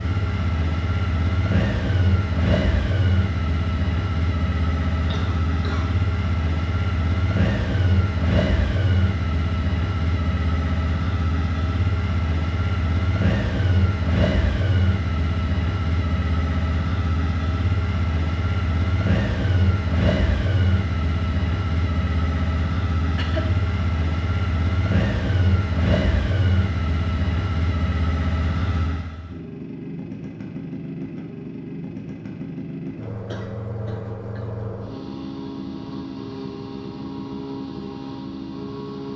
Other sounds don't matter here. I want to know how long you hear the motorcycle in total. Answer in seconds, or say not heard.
39 s.